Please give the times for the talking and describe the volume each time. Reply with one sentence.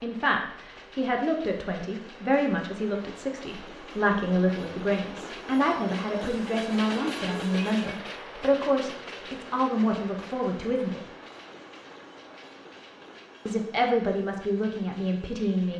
The talking can be heard from 0.0 to 11.0 s, at a steady volume; and briefly from 13.4 to 15.7 s.